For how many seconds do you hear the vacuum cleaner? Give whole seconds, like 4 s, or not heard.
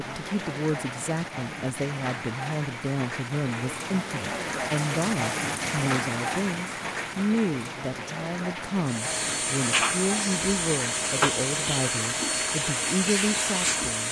5 s.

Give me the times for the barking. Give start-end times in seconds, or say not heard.
not heard.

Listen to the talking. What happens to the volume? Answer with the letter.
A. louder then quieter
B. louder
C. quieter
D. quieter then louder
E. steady
E.